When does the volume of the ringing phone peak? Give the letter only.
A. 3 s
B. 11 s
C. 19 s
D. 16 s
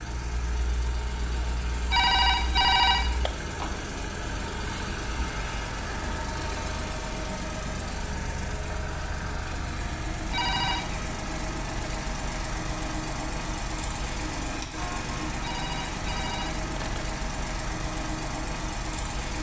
A.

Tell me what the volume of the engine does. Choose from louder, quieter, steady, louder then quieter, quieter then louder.
steady.